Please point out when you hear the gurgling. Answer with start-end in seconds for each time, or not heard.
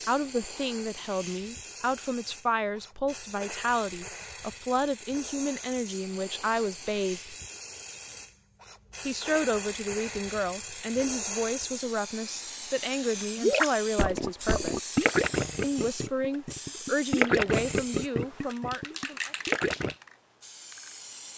13.3-19.9.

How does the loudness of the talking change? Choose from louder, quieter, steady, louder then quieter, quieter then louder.
steady.